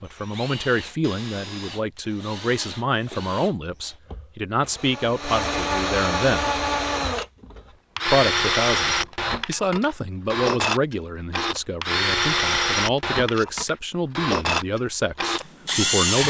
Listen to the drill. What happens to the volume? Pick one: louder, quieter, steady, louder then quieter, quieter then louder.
louder.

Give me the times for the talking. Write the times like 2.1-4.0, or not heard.
0.0-6.6, 8.1-16.2.